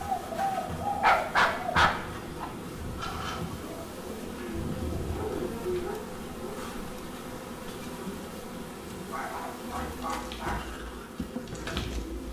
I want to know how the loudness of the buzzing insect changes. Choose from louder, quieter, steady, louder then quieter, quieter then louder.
steady.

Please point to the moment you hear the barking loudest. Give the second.
1 s.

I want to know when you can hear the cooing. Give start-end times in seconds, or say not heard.
0.0-5.7, 9.8-12.2.